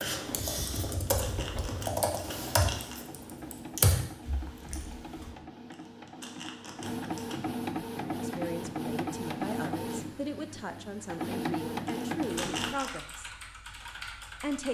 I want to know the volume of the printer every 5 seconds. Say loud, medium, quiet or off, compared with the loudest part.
medium, loud, loud.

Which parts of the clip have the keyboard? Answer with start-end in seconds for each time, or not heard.
0.0-5.3, 12.2-14.7.